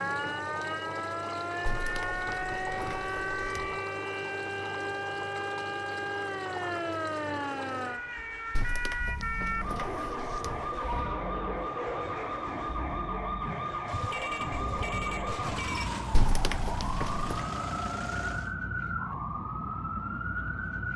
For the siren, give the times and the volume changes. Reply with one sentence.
You can hear the siren from 0.0 to 20.9 s, at a steady volume.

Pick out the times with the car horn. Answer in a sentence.
You can hear the car horn from 13.8 to 15.9 s.